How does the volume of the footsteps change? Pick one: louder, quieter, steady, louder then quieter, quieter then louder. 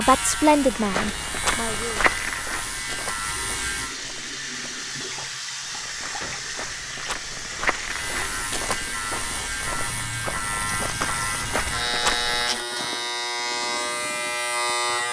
quieter then louder.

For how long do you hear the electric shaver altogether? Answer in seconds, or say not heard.
11 s.